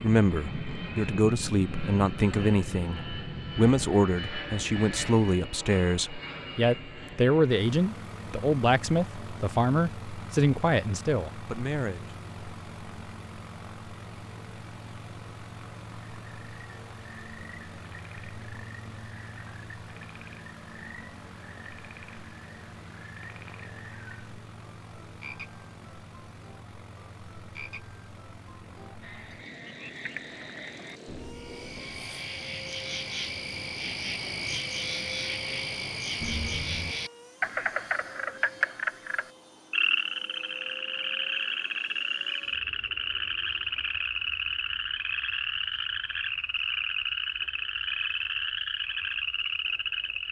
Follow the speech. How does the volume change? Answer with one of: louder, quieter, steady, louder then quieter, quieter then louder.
steady.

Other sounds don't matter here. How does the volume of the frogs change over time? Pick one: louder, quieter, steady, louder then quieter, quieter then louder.
louder.